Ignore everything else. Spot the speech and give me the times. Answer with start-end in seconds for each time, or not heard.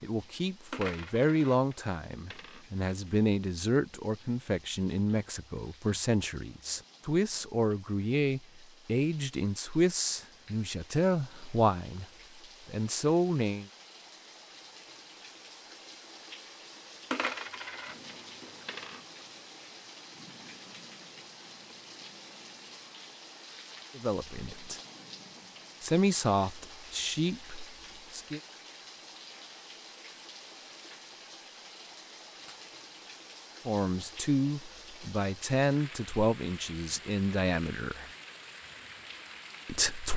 0.0-12.1, 12.7-13.7, 23.9-24.8, 25.8-28.4, 33.6-38.1, 39.6-40.1.